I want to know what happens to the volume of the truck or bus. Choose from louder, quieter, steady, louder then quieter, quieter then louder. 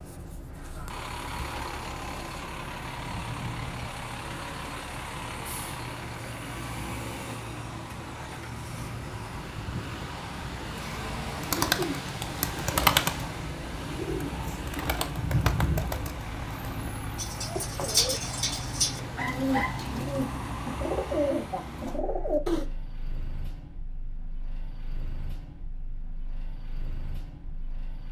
quieter.